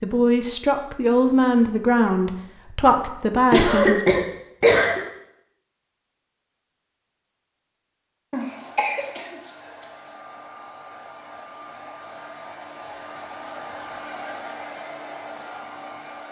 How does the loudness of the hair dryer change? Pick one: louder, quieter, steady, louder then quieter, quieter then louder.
louder.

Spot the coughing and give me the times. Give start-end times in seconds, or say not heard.
3.5-5.0, 8.3-9.3.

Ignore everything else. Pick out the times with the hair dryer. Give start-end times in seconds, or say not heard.
8.3-16.2.